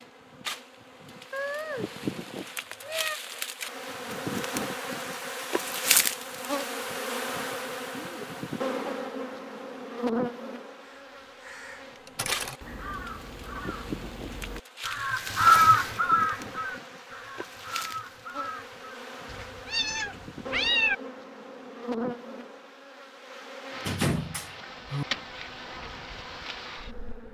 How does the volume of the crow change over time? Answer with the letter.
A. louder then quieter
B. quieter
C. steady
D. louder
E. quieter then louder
A.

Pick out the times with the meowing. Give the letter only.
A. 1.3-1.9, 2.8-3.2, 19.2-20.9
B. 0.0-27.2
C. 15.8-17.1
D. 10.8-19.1
A.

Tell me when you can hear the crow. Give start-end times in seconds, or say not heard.
10.8-19.1.